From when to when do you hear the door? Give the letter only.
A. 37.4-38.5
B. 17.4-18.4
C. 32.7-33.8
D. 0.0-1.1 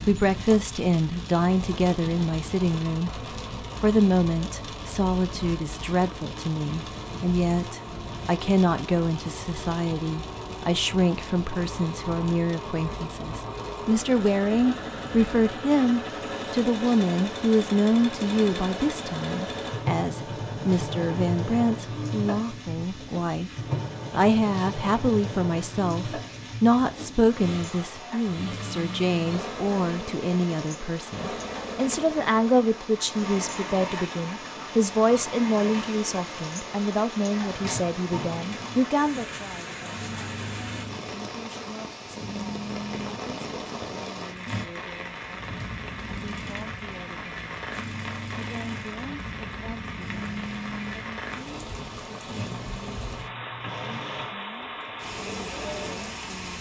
A.